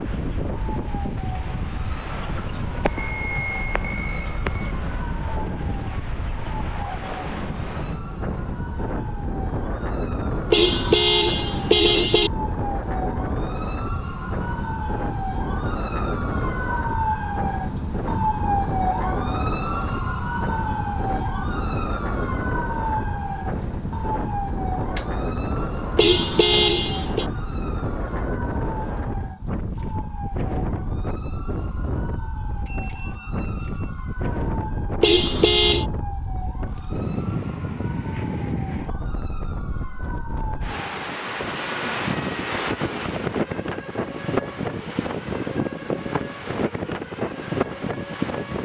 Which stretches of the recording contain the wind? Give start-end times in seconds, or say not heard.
0.0-48.5.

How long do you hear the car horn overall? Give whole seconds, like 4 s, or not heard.
4 s.